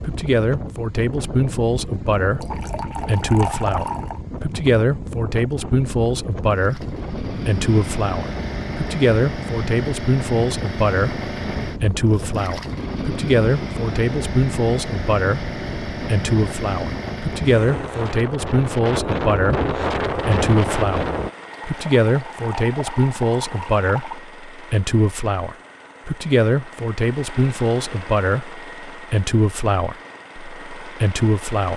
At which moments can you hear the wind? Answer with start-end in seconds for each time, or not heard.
0.0-21.3.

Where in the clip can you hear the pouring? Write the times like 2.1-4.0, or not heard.
2.4-4.2, 21.6-24.1.